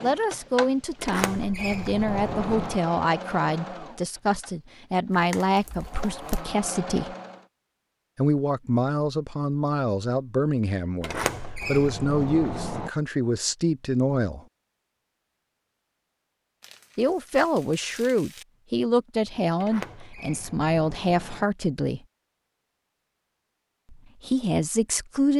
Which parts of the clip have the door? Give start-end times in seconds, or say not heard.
0.9-2.8, 11.0-12.9, 19.6-21.4.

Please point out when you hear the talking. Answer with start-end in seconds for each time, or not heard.
0.0-7.2, 8.2-14.4, 16.9-22.0, 23.9-25.3.